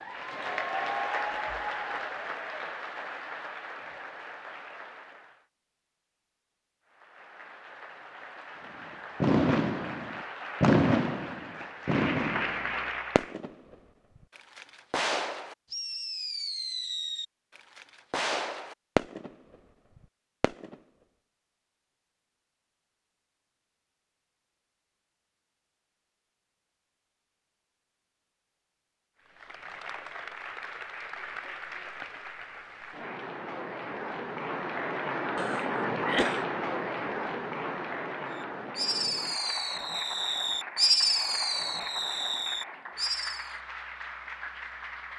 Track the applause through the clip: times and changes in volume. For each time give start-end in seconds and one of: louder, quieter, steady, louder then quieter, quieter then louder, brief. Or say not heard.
0.0-5.5 quieter
6.8-13.3 louder
29.2-45.1 louder then quieter.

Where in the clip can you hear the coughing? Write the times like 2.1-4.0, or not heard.
35.4-36.5.